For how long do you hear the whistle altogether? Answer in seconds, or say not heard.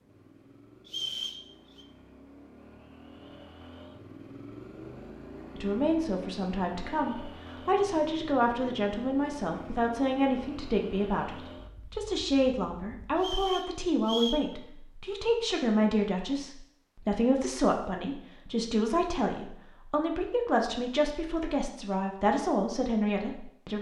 2 s.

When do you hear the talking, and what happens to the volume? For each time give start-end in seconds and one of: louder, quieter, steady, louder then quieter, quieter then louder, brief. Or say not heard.
5.5-23.7 steady.